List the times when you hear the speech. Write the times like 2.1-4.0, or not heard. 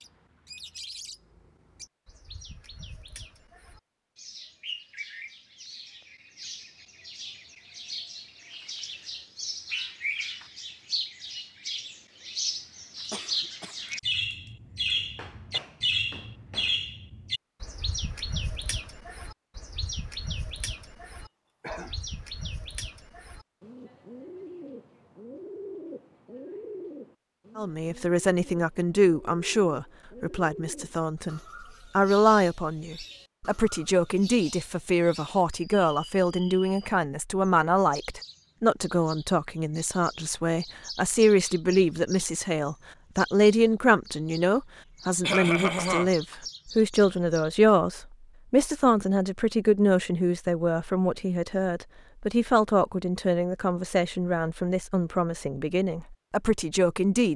27.6-57.3.